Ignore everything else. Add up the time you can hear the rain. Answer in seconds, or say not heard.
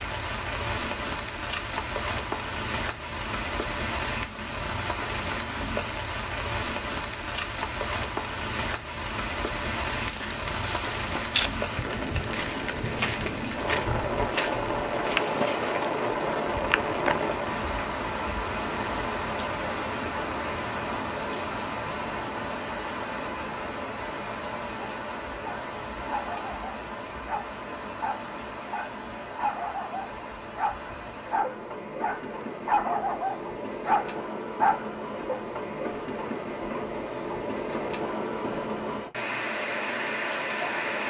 41 s.